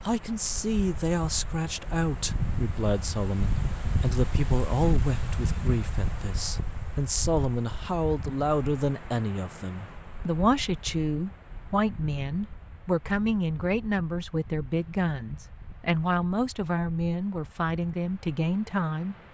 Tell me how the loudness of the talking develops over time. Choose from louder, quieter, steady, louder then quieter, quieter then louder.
steady.